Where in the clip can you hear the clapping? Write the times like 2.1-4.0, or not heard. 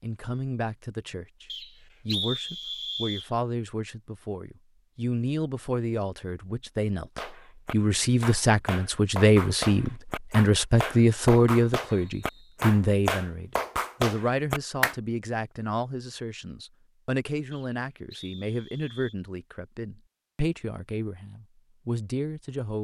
7.2-14.9.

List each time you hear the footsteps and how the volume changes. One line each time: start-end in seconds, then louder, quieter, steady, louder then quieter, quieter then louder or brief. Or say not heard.
not heard.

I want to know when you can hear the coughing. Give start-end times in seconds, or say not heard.
not heard.